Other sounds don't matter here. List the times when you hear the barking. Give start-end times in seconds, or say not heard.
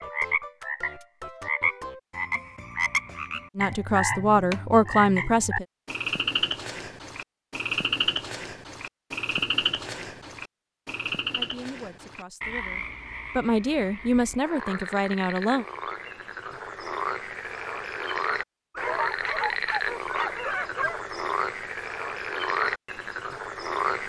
18.8-21.0.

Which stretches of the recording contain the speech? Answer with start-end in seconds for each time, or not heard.
3.5-5.7, 11.3-15.7.